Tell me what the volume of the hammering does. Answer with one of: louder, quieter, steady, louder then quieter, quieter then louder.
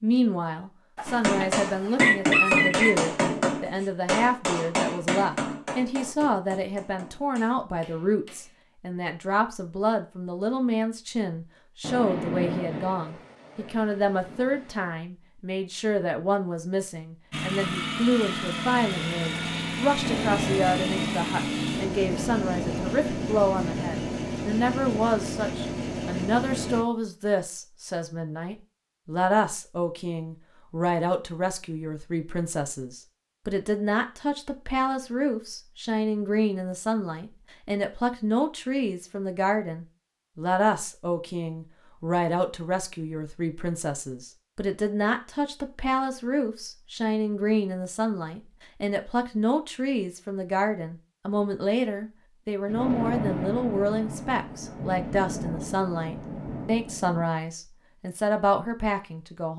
quieter.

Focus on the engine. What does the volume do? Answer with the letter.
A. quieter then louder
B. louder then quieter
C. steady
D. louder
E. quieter
C.